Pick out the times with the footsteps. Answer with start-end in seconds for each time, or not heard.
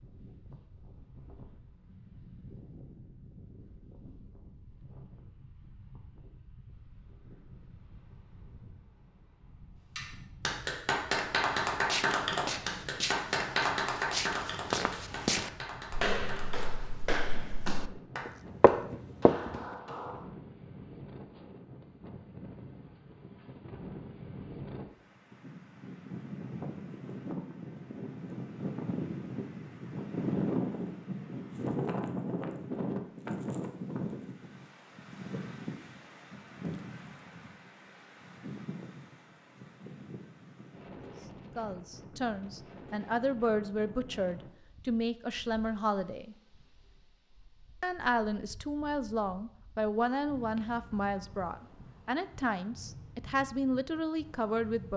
11.8-19.6.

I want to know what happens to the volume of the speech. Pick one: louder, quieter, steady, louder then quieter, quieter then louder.
steady.